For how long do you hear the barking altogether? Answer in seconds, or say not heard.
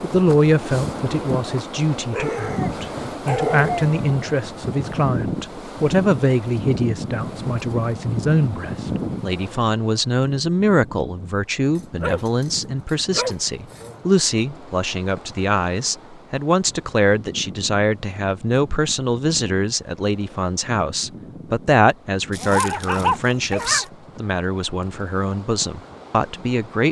6 s.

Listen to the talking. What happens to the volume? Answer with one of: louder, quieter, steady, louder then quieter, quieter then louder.
steady.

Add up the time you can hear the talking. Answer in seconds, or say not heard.
27 s.